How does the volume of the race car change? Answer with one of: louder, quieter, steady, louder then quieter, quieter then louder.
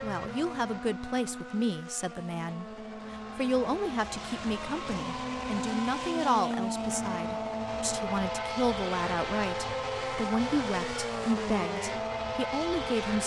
louder.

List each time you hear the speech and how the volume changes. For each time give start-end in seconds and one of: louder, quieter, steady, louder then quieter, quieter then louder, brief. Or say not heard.
0.0-13.2 steady.